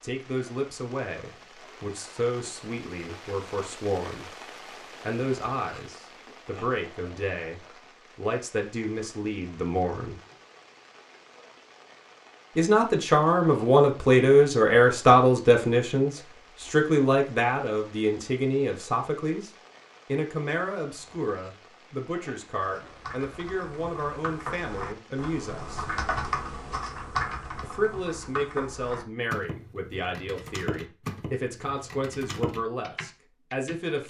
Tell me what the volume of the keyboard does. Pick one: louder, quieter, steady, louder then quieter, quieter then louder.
louder then quieter.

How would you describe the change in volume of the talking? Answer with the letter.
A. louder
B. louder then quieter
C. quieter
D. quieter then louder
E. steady
B.